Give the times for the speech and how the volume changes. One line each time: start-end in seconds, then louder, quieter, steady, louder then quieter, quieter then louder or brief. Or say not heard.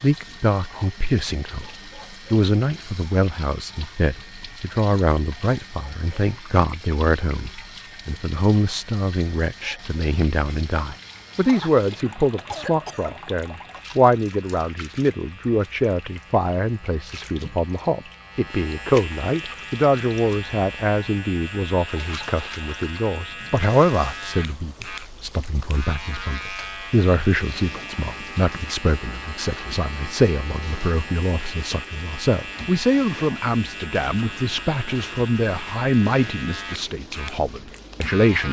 0.0-38.4 steady.